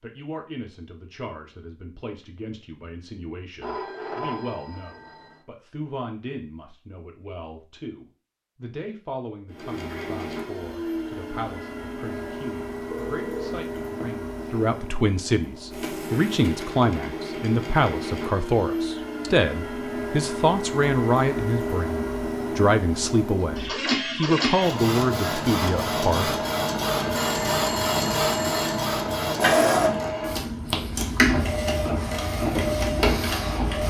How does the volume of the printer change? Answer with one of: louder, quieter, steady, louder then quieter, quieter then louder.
louder.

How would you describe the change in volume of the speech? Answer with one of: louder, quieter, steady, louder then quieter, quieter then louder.
louder.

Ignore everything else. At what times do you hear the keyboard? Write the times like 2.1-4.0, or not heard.
not heard.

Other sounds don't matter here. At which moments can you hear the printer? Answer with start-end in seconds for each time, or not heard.
9.5-33.8.